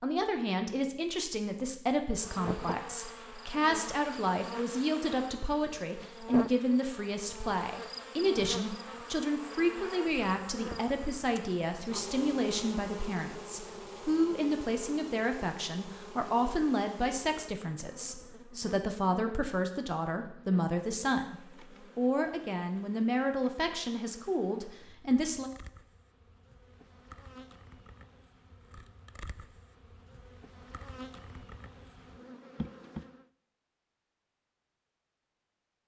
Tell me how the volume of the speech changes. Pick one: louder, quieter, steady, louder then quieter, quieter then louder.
steady.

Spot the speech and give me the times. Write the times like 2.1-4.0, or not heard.
0.0-25.5.